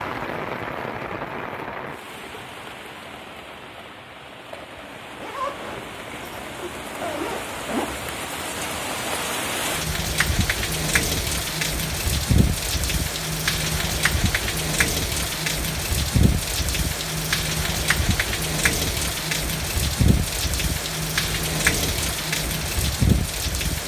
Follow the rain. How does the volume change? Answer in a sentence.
The volume of the rain goes up.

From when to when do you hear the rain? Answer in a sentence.
You can hear the rain from 0.0 to 23.8 s.